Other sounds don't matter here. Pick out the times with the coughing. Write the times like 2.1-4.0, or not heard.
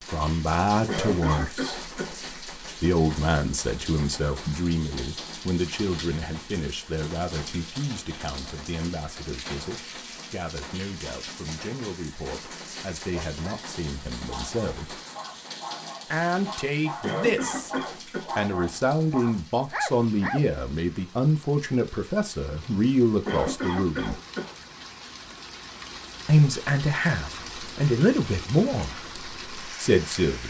0.8-2.1, 17.0-18.3, 23.2-24.6.